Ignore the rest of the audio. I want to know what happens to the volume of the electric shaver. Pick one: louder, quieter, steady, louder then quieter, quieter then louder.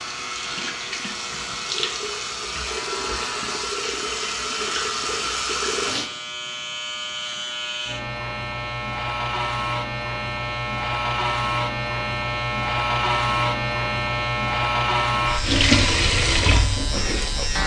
louder.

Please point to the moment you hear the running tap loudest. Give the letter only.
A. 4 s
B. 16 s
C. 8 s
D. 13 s
B.